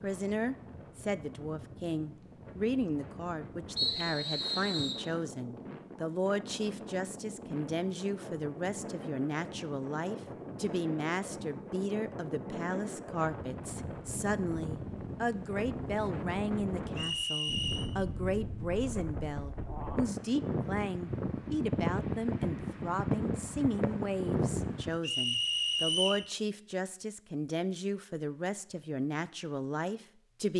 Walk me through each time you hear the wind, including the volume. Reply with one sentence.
You can hear the wind from 0.0 to 25.0 s, getting louder.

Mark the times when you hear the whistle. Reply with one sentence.
The whistle can be heard from 3.8 to 5.0 s, from 16.9 to 17.9 s and from 25.0 to 26.2 s.